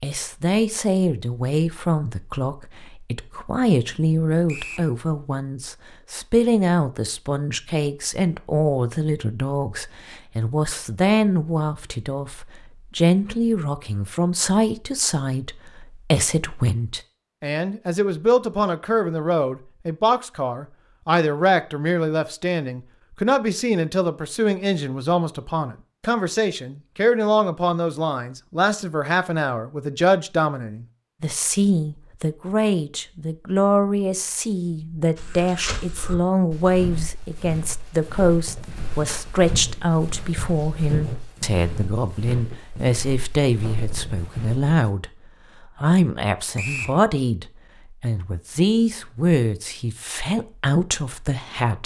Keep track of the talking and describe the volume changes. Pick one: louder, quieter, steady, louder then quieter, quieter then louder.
steady.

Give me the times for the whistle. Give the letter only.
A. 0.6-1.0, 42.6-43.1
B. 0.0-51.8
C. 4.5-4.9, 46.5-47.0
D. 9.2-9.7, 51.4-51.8
C.